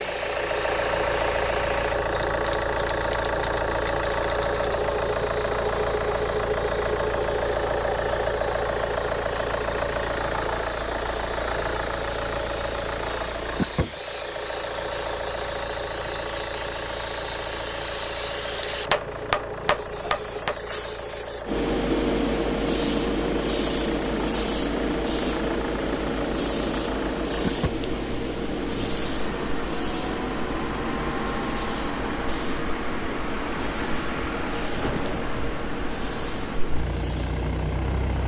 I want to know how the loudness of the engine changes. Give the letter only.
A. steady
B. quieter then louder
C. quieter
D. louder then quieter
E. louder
C.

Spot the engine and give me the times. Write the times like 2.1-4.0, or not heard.
0.0-38.2.